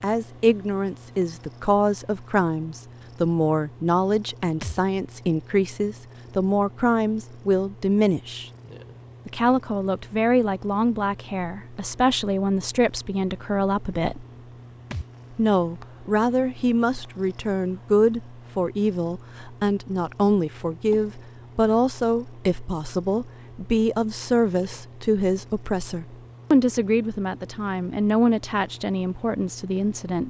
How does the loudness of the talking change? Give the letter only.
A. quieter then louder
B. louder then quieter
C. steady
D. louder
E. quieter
C.